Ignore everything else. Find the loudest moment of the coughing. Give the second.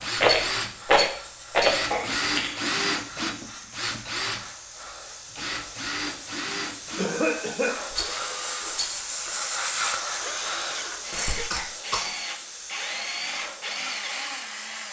7 s.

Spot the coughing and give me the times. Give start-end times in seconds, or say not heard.
1.9-2.8, 7.0-7.8, 11.1-12.1.